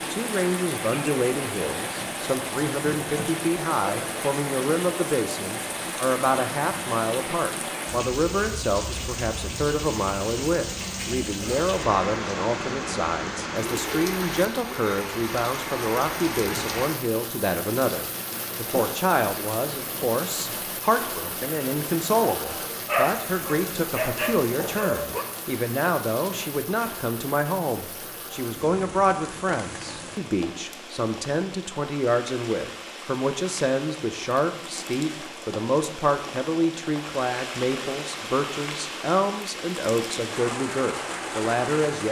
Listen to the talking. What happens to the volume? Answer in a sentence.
The volume of the talking stays about the same.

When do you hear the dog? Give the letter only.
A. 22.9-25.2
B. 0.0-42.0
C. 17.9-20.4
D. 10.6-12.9
A.